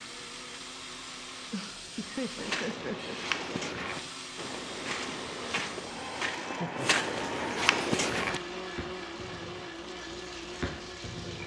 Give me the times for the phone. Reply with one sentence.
You can't hear the phone here.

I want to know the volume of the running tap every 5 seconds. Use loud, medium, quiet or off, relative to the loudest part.
loud, medium, loud.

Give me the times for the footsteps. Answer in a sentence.
You can hear the footsteps from 2.4 to 8.4 s.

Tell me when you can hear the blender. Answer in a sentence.
You can hear the blender from 0.0 to 11.4 s.